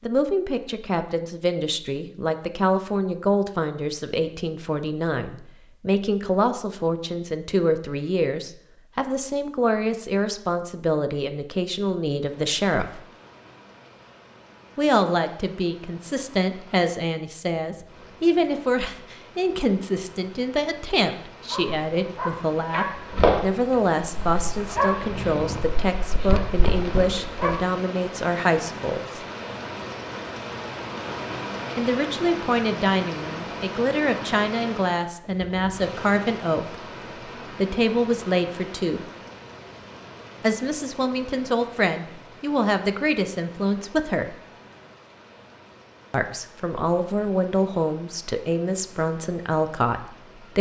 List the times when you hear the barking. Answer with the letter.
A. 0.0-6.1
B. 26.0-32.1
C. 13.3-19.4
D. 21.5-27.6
D.